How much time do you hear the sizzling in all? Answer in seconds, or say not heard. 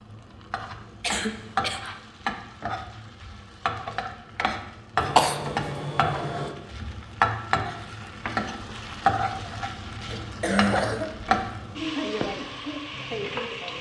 14 s.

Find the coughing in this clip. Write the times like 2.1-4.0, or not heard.
1.0-1.9, 5.0-6.5, 10.1-11.2.